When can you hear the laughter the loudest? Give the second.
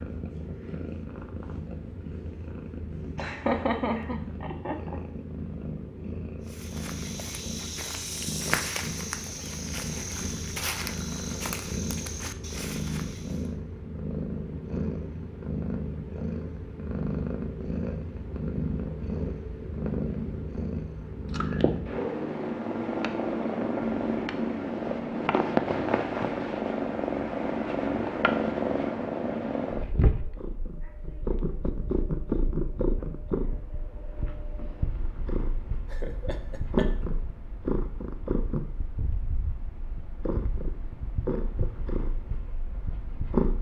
4 s.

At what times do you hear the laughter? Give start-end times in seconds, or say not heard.
3.1-5.0, 35.9-36.9.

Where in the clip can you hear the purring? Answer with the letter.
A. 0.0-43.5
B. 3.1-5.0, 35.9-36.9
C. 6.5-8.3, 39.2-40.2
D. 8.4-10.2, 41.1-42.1
A.